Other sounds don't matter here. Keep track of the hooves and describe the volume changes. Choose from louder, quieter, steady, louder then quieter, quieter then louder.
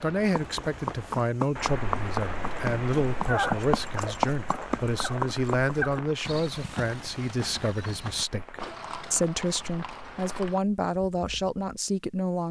quieter.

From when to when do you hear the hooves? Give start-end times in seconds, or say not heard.
0.2-11.8.